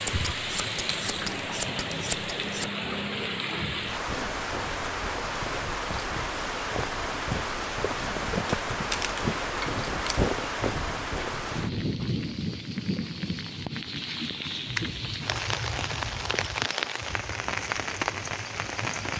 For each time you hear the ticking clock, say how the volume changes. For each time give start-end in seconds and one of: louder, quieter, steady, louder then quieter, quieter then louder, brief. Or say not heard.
not heard.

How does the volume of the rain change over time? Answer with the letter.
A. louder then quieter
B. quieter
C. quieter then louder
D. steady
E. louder
D.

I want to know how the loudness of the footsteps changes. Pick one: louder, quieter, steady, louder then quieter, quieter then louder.
louder.